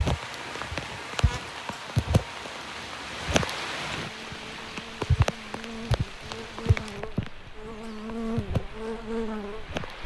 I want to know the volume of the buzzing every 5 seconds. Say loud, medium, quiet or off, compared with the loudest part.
medium, loud.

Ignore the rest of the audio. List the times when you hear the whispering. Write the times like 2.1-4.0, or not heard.
not heard.